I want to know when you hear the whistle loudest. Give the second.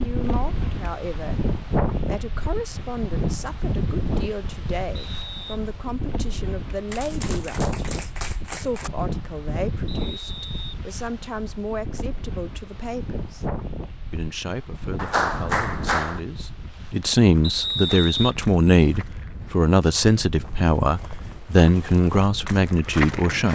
18 s.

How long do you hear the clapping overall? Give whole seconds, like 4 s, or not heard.
3 s.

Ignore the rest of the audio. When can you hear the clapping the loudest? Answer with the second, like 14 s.
15 s.